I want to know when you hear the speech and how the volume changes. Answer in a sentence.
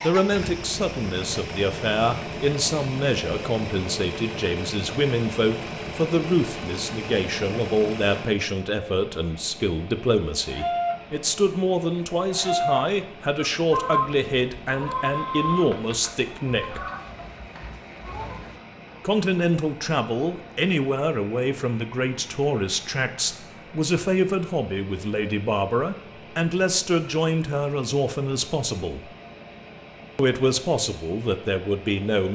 The speech can be heard from 0.0 to 16.8 s, at a steady volume; from 19.0 to 29.1 s, at a steady volume; and briefly from 30.1 to 32.3 s.